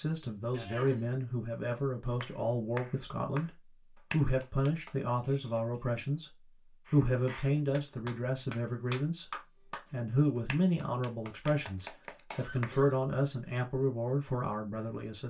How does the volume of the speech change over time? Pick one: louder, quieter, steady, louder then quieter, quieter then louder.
steady.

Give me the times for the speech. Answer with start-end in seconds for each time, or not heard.
0.0-6.3, 6.9-15.2.